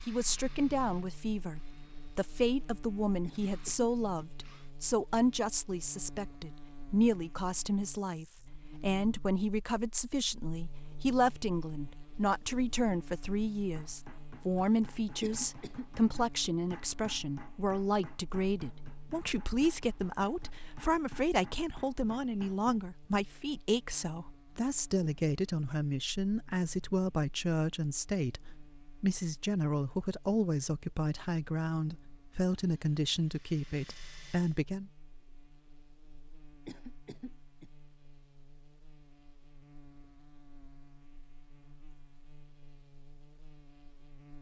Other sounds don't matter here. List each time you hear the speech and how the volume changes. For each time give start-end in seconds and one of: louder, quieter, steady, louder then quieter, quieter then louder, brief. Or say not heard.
0.1-34.9 steady.